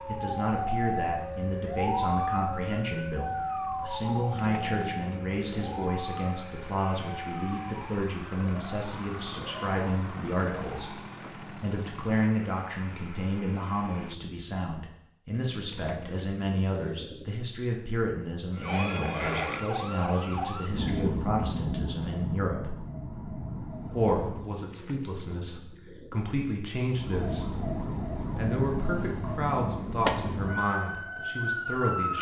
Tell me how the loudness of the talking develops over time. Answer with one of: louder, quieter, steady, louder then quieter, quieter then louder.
steady.